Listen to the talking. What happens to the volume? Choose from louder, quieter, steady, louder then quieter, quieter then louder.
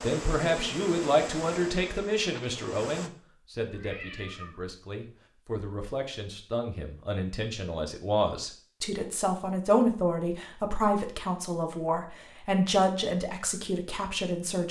quieter then louder.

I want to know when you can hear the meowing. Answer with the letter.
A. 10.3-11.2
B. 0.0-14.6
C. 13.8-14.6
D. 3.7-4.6
D.